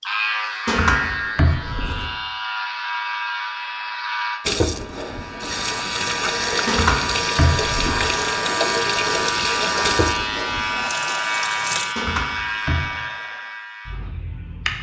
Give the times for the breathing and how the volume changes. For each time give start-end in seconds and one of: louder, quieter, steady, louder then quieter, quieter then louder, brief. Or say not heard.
not heard.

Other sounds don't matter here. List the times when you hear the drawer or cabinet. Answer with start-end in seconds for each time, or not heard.
0.7-2.1, 6.7-8.2, 11.9-12.9.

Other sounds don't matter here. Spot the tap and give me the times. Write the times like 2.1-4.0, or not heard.
4.5-11.9.